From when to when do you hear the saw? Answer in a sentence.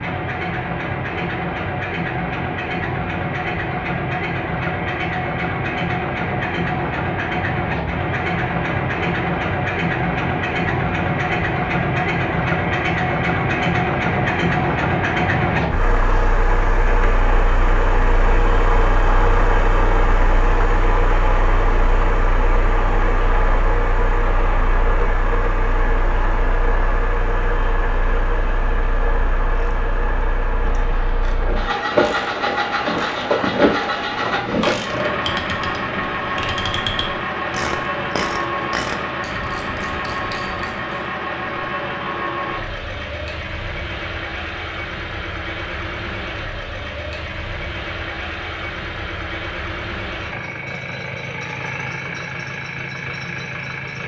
The saw can't be heard in this clip.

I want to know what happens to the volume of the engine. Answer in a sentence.
The volume of the engine goes down.